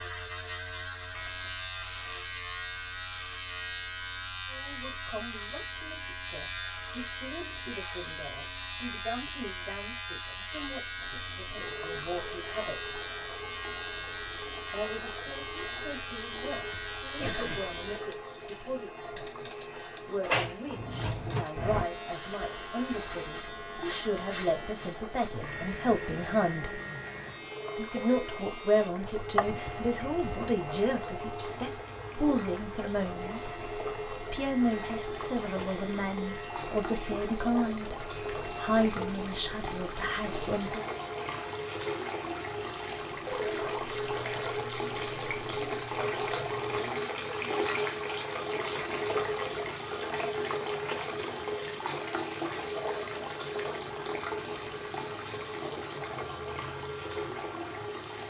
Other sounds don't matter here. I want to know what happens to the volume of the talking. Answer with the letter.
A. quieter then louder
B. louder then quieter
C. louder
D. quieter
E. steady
C.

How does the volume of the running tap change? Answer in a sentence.
The volume of the running tap goes up.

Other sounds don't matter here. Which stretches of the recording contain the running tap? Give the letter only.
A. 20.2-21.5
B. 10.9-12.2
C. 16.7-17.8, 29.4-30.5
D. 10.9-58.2
D.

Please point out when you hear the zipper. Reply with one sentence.
The zipper can't be heard in this clip.